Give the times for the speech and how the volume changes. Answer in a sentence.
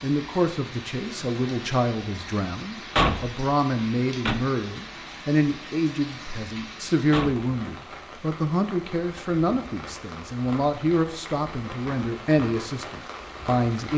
The speech can be heard from 0.0 to 13.9 s, at a steady volume.